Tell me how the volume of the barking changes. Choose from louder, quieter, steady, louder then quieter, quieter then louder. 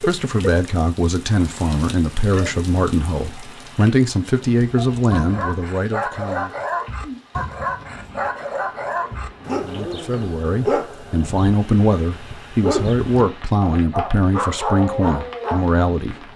steady.